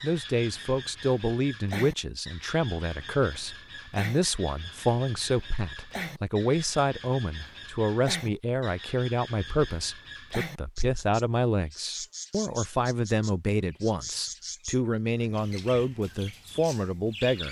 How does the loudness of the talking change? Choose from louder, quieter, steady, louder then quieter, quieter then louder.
steady.